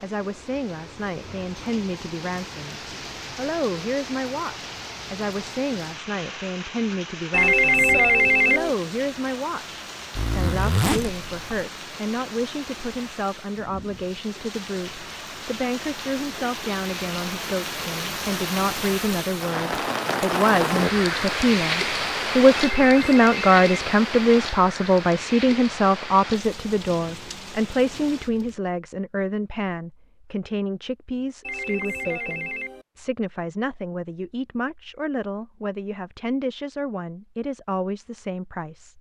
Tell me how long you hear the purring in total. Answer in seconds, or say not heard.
not heard.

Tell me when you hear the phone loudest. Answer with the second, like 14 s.
8 s.